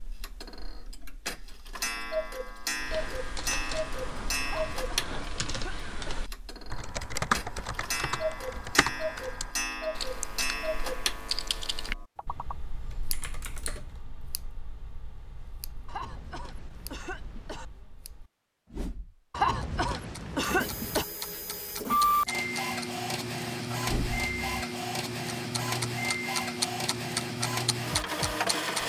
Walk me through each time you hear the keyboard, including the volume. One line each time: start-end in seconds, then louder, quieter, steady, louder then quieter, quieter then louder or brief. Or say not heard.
2.7-14.0 louder then quieter.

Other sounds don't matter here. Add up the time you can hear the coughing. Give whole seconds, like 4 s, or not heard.
5 s.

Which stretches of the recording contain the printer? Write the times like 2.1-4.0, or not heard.
20.4-28.8.